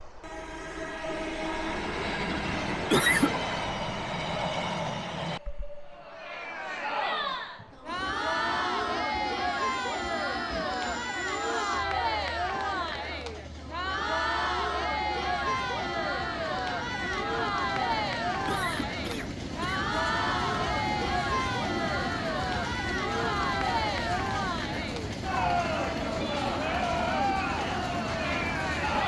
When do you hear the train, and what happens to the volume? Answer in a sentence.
You can hear the train from 0.0 to 29.0 s, getting quieter then louder.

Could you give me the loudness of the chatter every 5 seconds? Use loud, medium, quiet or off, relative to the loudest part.
off, loud, loud, loud, loud, loud.